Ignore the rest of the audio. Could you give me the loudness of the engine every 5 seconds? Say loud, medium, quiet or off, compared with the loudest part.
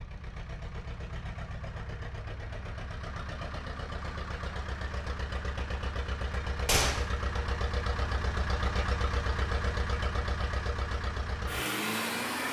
medium, loud, loud.